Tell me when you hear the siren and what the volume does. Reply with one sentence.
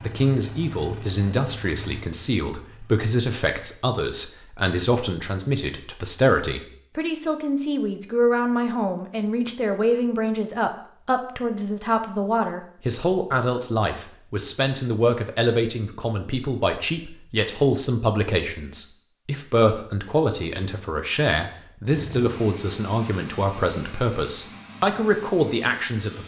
The siren can't be heard in this clip.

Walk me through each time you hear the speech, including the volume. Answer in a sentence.
You can hear the speech from 0.0 to 26.2 s, at a steady volume.